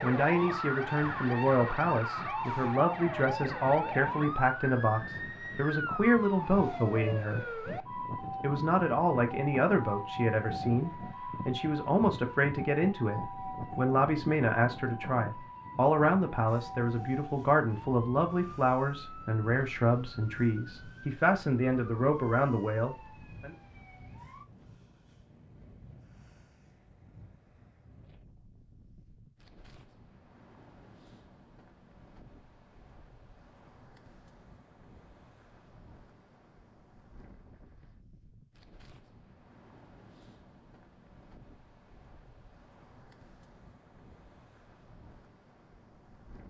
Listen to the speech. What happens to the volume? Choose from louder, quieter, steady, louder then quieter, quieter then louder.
steady.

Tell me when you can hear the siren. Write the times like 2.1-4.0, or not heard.
0.0-24.4.